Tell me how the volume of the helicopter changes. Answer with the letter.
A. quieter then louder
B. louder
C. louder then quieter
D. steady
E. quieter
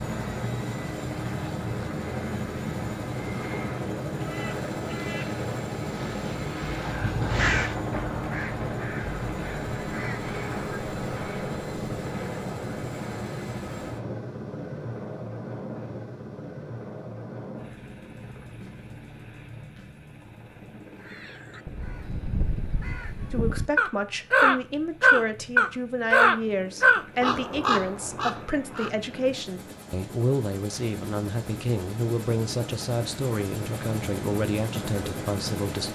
A.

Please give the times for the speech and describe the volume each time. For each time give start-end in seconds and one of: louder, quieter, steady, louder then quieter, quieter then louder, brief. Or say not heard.
23.3-35.9 steady.